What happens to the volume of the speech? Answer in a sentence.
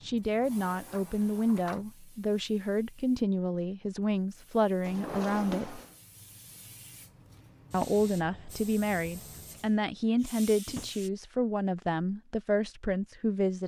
The loudness of the speech stays about the same.